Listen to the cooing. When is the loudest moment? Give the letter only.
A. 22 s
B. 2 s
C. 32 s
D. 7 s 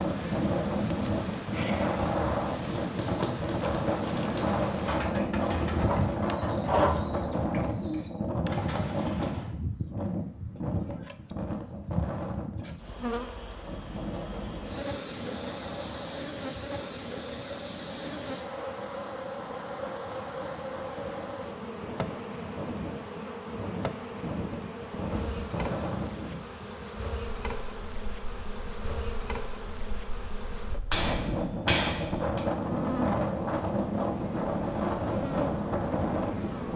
D.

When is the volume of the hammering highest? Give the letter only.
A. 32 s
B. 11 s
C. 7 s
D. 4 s
A.